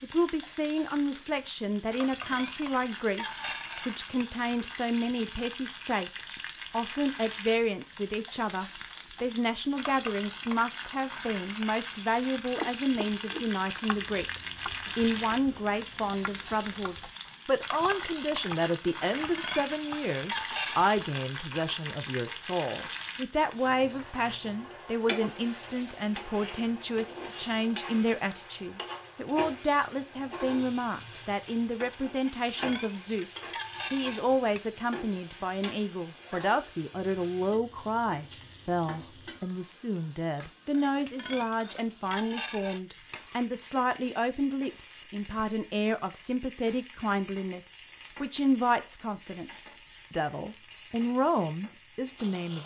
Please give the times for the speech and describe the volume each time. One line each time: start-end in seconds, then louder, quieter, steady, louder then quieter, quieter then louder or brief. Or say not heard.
0.0-52.6 steady.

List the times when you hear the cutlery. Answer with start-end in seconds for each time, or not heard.
1.9-4.2, 19.1-20.9, 32.2-34.6, 40.8-43.5.